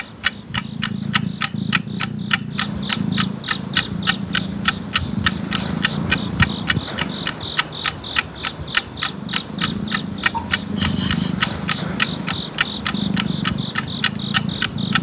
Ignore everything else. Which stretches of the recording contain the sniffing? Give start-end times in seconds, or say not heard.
10.3-11.3.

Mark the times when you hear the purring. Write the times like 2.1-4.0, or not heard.
0.0-7.4, 8.9-14.9.